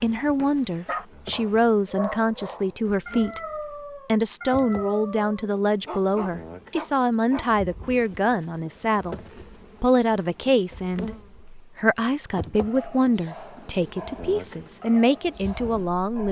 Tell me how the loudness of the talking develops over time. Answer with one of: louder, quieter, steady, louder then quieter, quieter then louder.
steady.